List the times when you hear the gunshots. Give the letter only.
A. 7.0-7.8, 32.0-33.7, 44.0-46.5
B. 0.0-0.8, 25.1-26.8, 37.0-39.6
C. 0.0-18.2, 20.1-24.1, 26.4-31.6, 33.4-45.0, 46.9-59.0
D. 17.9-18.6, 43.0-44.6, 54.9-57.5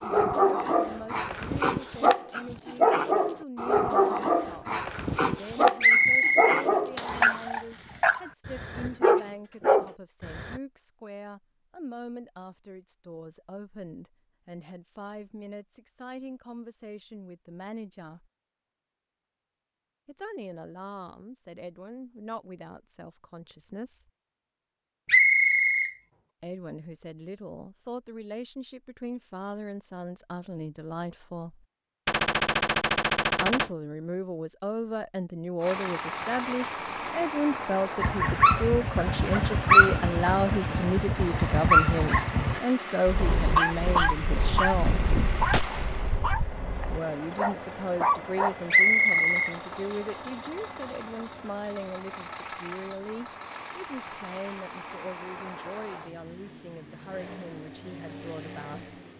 A.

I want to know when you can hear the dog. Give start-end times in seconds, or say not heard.
0.0-10.6, 38.0-48.5.